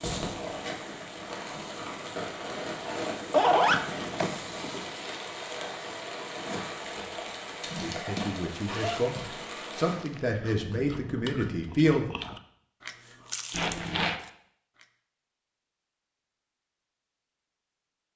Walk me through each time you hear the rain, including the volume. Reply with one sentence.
You can hear the rain from 0.0 to 10.0 s, at a steady volume.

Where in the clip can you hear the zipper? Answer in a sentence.
You can hear the zipper from 2.6 to 4.3 s, from 8.7 to 10.2 s and from 13.5 to 14.2 s.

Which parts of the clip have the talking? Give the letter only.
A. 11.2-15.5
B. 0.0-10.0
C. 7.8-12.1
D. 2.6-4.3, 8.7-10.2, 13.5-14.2
C.